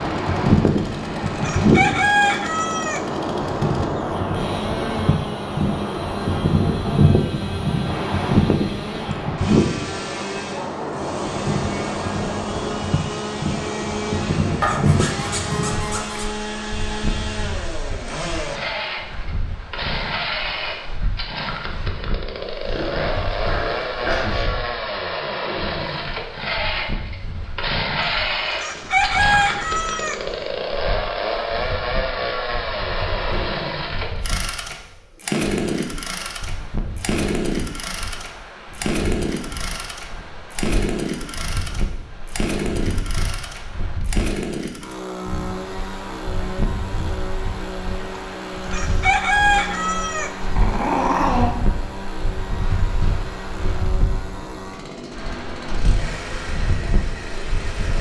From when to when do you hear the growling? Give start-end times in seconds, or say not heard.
14.6-16.3, 22.6-24.4, 50.5-51.5.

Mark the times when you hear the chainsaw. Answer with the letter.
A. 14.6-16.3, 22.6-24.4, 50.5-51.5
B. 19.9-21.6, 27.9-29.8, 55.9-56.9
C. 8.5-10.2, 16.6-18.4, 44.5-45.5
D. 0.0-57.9
D.